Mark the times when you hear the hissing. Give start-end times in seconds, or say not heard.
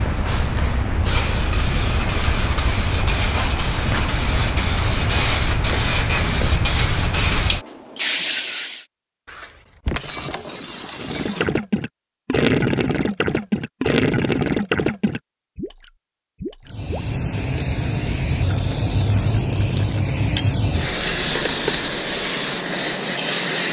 0.0-8.8, 16.6-23.6.